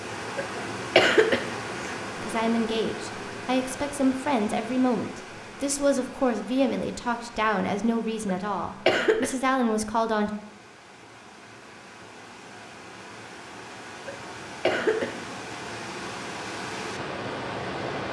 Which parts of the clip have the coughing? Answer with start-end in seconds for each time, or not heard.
0.3-1.9, 8.2-9.3, 14.1-15.2.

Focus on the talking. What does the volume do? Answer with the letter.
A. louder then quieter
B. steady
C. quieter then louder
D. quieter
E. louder
B.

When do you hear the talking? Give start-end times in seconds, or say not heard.
2.2-10.3.